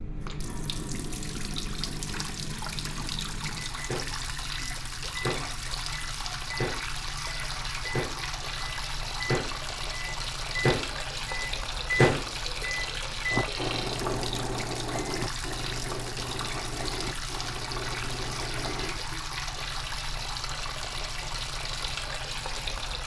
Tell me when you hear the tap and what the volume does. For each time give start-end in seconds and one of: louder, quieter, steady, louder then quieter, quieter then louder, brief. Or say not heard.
0.0-23.0 steady.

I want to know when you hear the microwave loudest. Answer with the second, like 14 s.
12 s.